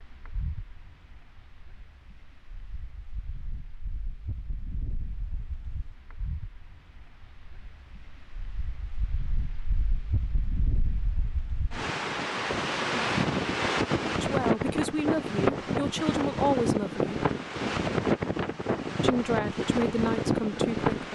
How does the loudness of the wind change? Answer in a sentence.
The loudness of the wind goes up.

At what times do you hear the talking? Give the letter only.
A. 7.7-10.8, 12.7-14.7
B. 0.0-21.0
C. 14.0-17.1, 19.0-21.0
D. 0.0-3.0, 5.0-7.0
C.